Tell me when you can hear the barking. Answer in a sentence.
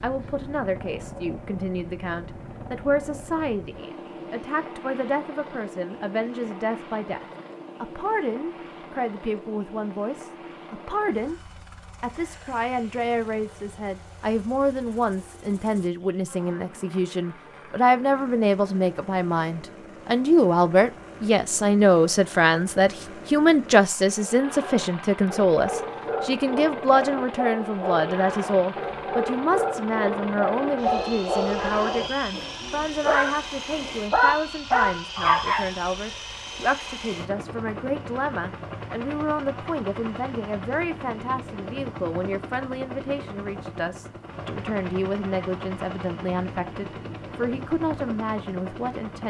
The barking can be heard from 24.1 to 35.7 s.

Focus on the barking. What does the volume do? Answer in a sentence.
The volume of the barking goes up.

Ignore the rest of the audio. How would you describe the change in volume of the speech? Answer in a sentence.
The loudness of the speech goes up, then down.